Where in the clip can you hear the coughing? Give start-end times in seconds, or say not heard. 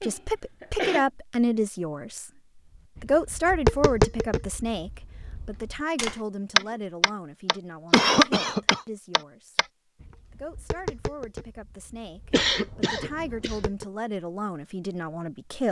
0.0-1.1, 7.9-8.8, 12.3-13.7.